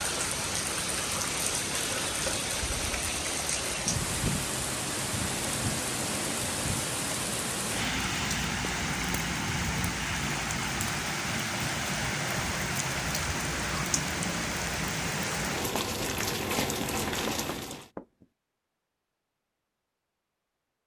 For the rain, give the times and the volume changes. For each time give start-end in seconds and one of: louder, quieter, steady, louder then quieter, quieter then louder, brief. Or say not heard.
0.0-17.9 steady.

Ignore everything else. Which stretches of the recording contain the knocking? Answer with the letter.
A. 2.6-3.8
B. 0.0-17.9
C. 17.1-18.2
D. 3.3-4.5
C.